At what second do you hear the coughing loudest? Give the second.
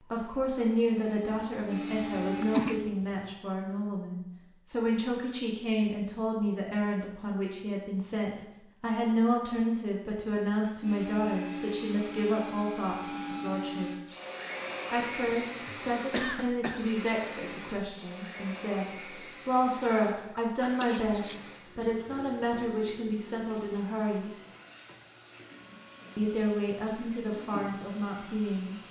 3 s.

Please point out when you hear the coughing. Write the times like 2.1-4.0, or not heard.
1.9-3.1, 15.2-17.0, 19.9-21.6.